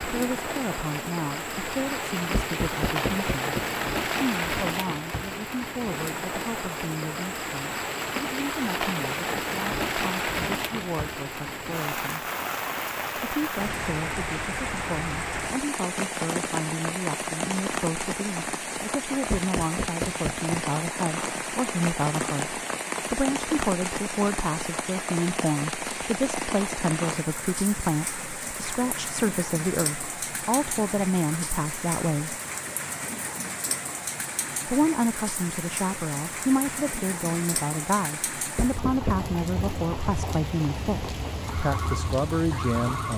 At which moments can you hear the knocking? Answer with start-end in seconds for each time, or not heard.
2.3-3.6, 19.3-20.6, 38.5-39.2.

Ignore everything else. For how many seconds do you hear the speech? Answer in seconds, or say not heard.
40 s.